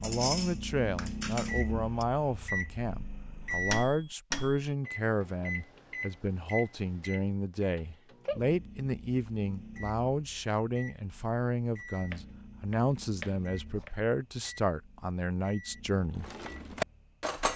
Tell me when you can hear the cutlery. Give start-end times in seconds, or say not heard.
0.0-2.0, 16.0-17.5.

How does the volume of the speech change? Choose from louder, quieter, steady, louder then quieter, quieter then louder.
steady.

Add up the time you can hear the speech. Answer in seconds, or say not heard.
16 s.